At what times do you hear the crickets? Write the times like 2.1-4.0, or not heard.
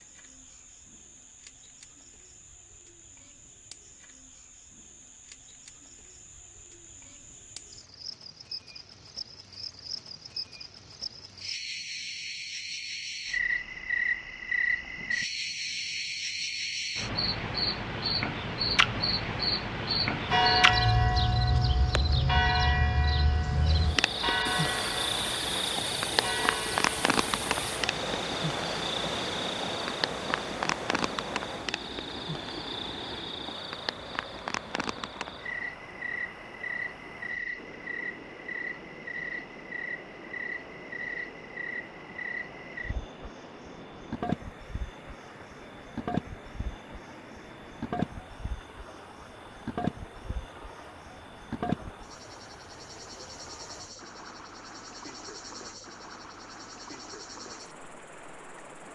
0.0-58.9.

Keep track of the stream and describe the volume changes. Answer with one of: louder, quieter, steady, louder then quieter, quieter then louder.
quieter.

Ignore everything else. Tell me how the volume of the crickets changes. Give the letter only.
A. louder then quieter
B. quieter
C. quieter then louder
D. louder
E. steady
A.